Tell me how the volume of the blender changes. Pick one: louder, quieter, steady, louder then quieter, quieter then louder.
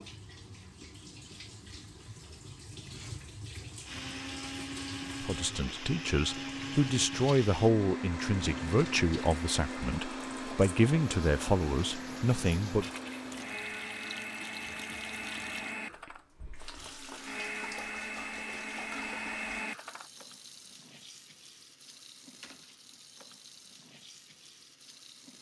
steady.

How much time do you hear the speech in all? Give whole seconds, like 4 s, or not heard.
8 s.